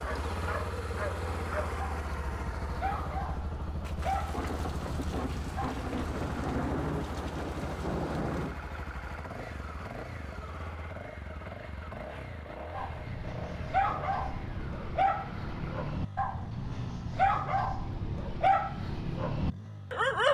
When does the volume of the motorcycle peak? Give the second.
1 s.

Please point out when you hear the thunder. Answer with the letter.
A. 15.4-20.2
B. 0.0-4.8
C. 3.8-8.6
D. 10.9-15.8
C.